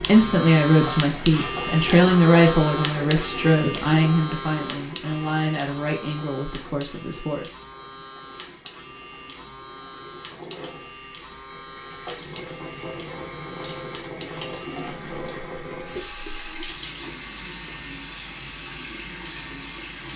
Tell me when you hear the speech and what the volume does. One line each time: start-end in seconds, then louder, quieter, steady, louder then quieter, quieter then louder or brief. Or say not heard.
0.0-7.5 quieter.